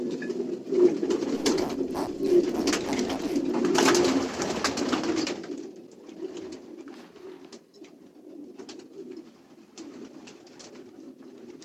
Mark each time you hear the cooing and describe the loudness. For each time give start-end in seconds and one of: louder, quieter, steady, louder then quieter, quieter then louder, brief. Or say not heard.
0.0-11.6 quieter.